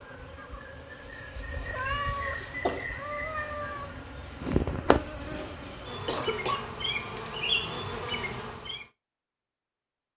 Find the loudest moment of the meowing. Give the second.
2 s.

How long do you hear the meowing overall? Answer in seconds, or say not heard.
2 s.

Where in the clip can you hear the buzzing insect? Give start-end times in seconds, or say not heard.
0.0-8.8.